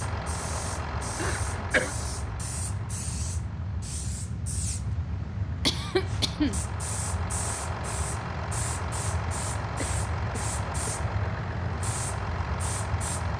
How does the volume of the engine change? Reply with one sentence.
The volume of the engine goes down, then up.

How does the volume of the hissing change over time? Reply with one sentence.
The loudness of the hissing stays about the same.